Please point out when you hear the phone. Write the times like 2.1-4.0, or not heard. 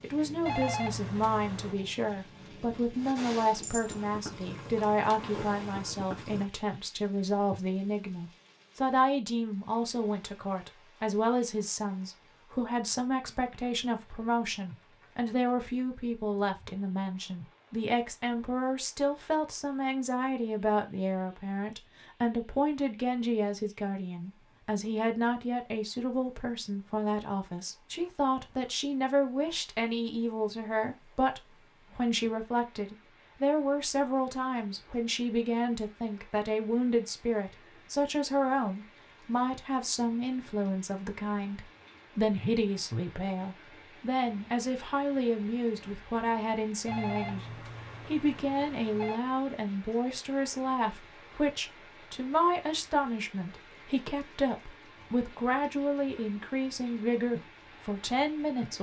0.5-1.8, 46.9-49.2.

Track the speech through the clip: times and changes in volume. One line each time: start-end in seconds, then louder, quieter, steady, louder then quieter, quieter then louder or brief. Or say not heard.
0.0-58.7 steady.